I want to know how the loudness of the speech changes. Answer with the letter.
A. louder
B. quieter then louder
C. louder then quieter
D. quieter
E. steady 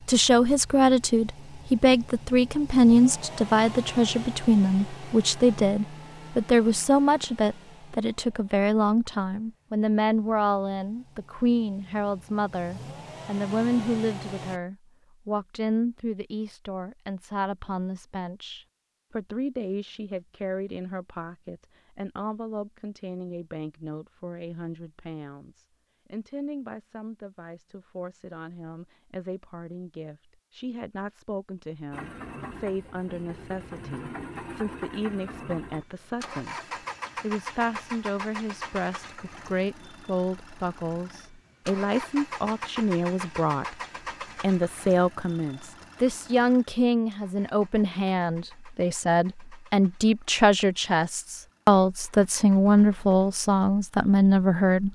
B.